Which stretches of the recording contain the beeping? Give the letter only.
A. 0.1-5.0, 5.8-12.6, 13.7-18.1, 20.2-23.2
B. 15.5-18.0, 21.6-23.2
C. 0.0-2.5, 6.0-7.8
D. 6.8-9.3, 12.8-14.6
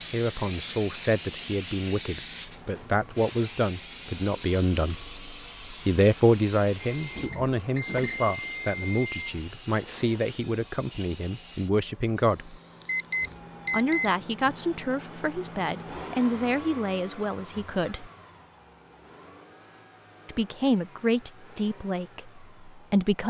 D.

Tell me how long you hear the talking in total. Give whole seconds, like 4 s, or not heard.
19 s.